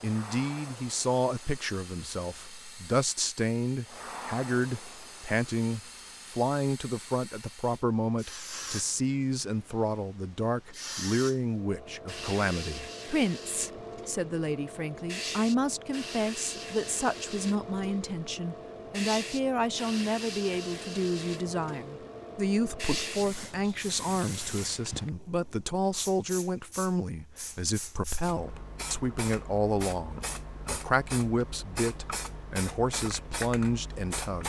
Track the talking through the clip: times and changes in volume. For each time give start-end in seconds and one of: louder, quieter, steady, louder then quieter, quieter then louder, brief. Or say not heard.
0.0-34.4 steady.